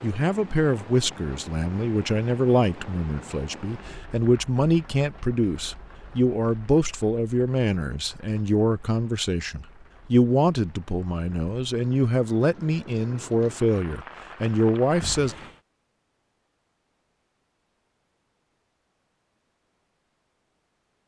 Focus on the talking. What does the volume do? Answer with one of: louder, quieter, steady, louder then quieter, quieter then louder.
steady.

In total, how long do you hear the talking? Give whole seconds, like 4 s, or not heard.
15 s.